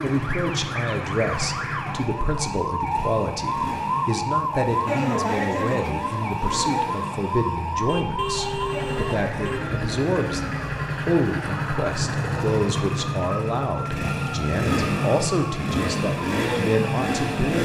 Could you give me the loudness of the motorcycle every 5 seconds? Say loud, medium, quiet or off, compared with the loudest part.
medium, medium, loud, loud.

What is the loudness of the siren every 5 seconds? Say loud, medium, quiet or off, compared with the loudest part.
loud, loud, medium, medium.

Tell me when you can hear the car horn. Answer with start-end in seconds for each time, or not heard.
7.8-9.6.